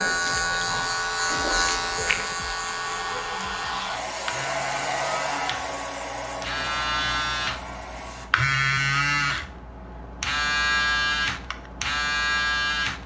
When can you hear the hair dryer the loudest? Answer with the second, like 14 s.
5 s.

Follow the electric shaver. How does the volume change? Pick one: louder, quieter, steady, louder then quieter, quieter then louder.
quieter then louder.